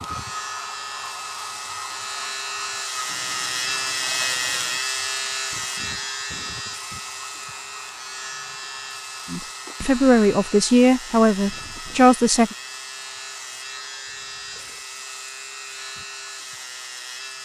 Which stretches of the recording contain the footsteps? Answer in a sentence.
You can't hear the footsteps here.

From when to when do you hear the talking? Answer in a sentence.
The talking can be heard from 9.3 to 12.6 s.